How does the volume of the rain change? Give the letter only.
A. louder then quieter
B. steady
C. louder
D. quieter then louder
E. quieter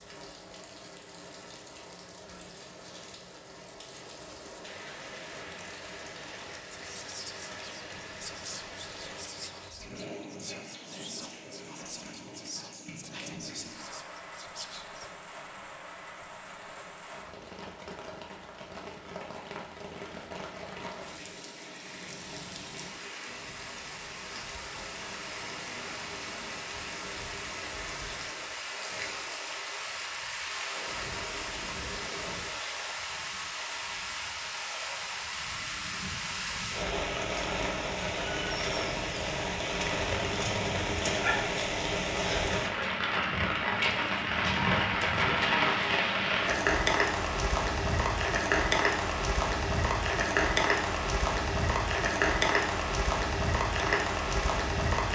C.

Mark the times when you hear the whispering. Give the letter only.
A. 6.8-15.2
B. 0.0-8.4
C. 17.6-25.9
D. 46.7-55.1
A.